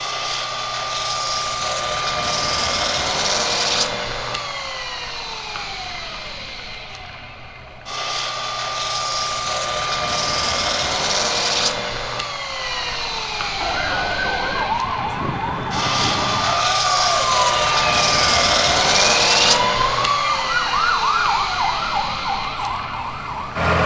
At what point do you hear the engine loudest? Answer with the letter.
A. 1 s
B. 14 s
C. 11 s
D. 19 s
D.